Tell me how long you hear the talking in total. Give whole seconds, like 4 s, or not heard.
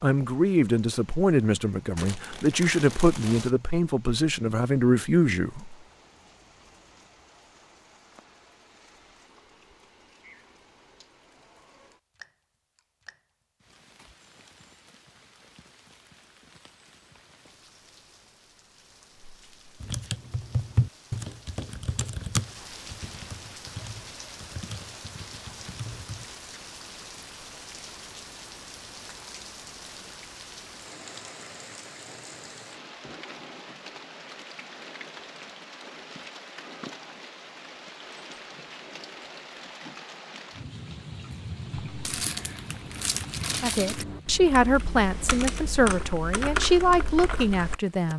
10 s.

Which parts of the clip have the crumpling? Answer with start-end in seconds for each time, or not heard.
1.9-3.5, 42.0-44.0.